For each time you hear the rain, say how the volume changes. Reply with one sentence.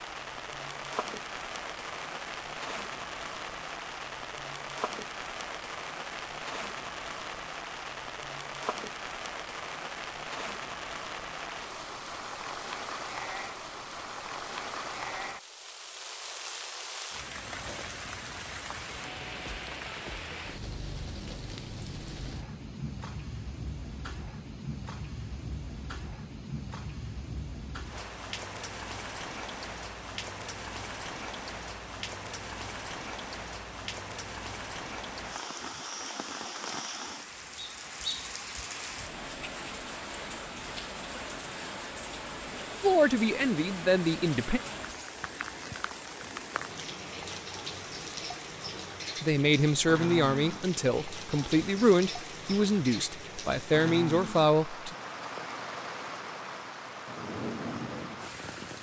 You can hear the rain from 0.0 to 58.7 s, at a steady volume.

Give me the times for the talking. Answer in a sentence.
You can hear the talking from 42.8 to 44.6 s and from 49.2 to 55.0 s.